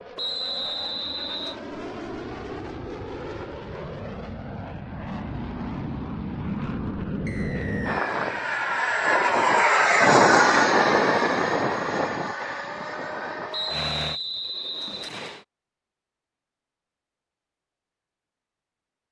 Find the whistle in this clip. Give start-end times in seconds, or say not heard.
0.1-1.6, 7.2-8.1, 13.5-15.4.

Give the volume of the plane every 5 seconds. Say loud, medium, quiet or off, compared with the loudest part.
quiet, loud, loud, off.